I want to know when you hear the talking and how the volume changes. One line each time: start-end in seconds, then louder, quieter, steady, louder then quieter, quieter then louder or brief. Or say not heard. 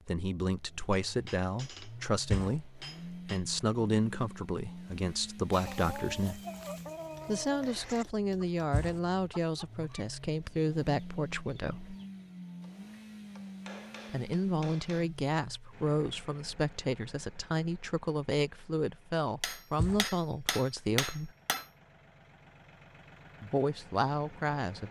0.1-6.4 steady
7.2-11.9 steady
14.1-21.3 steady
23.4-24.8 brief.